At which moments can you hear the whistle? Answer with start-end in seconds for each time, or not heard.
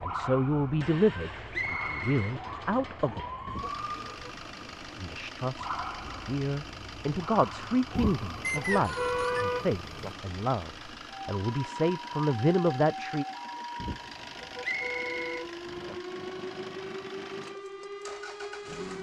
1.5-2.4, 8.4-9.4, 14.6-15.3.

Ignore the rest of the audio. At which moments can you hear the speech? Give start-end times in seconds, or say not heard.
0.0-3.2, 5.0-13.2.